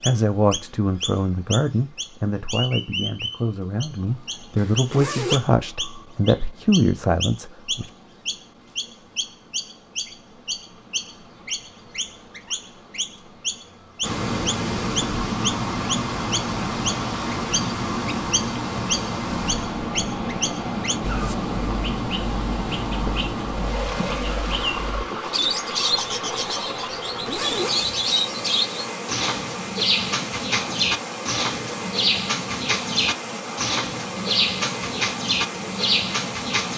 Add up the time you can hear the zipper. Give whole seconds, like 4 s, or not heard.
2 s.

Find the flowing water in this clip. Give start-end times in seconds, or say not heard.
14.0-36.7.